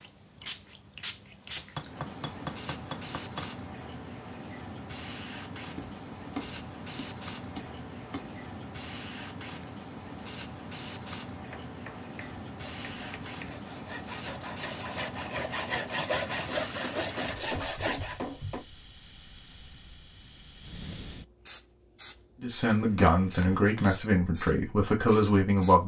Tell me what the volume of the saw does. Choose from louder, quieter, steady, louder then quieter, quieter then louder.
louder.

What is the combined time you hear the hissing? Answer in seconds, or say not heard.
26 s.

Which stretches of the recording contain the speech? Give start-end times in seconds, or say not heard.
22.4-25.8.